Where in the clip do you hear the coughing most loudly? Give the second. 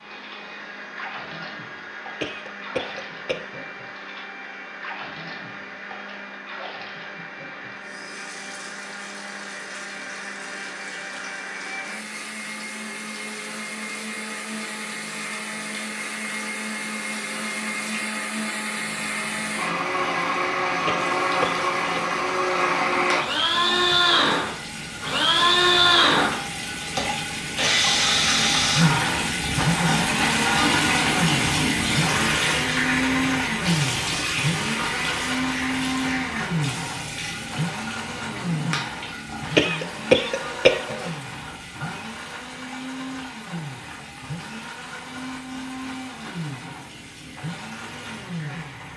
40 s.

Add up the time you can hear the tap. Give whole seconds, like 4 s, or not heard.
49 s.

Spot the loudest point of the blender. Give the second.
26 s.